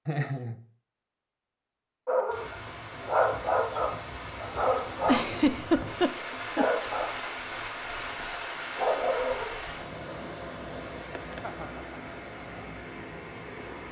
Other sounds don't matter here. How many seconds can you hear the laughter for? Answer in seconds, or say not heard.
3 s.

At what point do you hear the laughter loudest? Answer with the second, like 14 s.
6 s.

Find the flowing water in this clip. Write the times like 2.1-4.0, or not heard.
2.2-13.8.